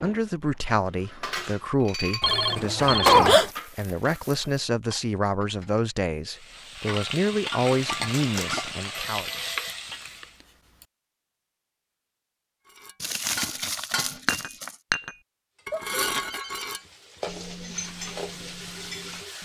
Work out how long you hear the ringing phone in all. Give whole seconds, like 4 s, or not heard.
4 s.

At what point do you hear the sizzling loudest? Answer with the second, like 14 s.
8 s.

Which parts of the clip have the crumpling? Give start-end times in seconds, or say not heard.
3.3-4.5, 8.0-8.6, 13.0-14.8.